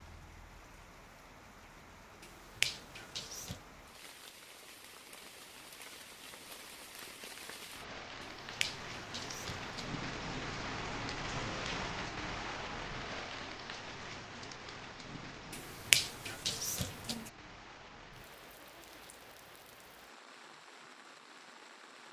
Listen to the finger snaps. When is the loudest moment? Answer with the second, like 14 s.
16 s.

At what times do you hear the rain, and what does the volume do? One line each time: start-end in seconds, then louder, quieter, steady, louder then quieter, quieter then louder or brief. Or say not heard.
0.0-22.0 louder then quieter.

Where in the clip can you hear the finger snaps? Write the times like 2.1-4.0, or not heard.
2.2-3.6, 8.2-9.8, 15.5-17.3.